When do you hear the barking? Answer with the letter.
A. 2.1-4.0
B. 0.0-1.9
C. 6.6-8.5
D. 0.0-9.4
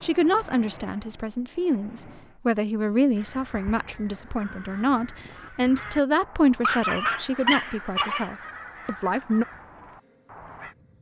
C.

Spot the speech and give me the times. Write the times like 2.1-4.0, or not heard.
0.0-9.4.